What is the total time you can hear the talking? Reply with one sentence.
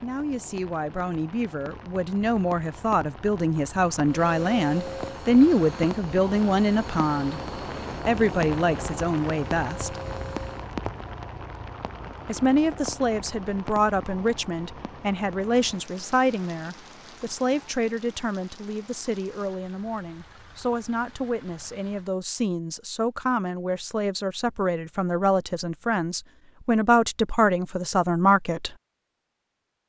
You can hear the talking for 26 seconds altogether.